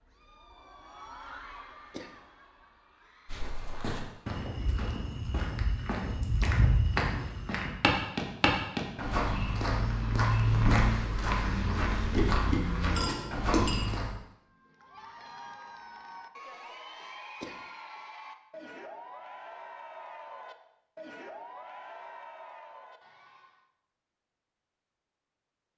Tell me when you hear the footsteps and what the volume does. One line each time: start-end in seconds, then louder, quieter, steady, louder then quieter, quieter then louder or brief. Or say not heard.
3.2-14.2 louder.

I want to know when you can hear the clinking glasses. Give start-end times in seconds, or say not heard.
12.9-13.8.